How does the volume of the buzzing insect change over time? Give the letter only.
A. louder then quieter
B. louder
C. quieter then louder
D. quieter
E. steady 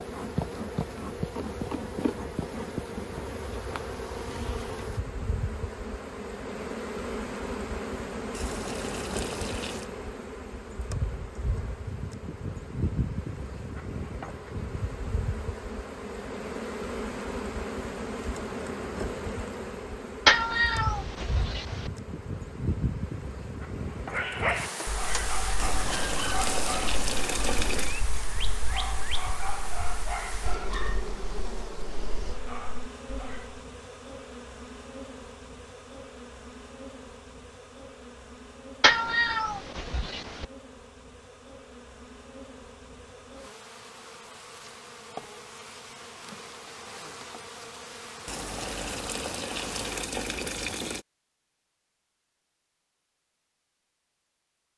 D.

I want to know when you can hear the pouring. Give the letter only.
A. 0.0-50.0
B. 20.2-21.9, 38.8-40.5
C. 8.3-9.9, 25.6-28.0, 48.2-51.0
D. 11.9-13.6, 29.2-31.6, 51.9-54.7
C.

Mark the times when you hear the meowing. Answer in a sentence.
The meowing can be heard from 20.2 to 21.9 s and from 38.8 to 40.5 s.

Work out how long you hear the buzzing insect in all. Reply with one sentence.
You can hear the buzzing insect for 50 seconds altogether.